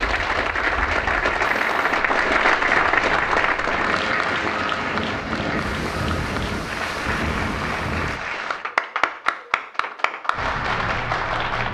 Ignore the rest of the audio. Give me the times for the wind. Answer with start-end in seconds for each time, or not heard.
0.0-8.2.